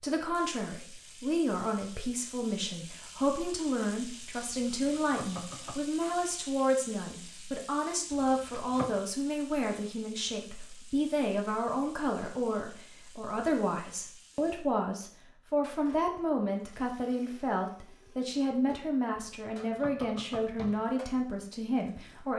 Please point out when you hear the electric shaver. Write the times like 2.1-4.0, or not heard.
not heard.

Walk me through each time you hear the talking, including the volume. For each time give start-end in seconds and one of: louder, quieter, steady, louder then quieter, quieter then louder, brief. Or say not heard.
0.0-22.3 steady.